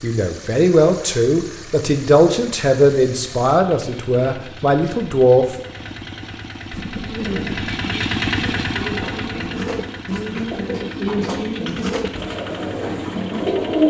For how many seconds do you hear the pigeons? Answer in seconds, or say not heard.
7 s.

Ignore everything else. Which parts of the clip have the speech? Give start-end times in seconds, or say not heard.
0.0-5.5.